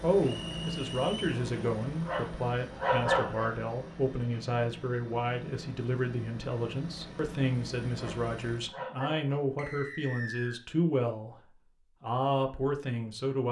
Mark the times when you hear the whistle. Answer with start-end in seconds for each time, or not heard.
0.2-1.2, 9.6-10.6.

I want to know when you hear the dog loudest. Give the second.
3 s.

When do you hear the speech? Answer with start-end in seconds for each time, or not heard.
0.0-13.4.